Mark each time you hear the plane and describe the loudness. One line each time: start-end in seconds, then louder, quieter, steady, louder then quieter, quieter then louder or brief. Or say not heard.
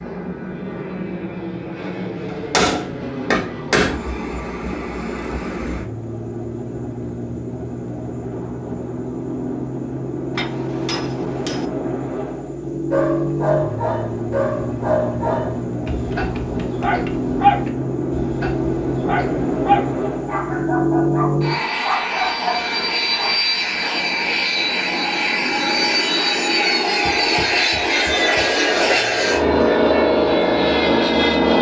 0.0-31.5 louder.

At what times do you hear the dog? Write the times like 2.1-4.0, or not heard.
12.9-23.4.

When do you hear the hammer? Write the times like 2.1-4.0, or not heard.
2.2-4.0, 10.3-11.7, 15.8-17.8, 27.0-28.6.